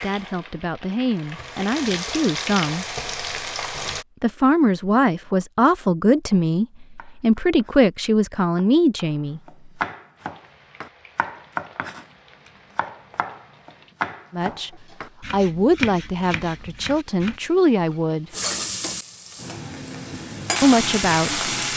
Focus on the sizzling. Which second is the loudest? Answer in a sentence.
The loudest moment of the sizzling is at 21 seconds.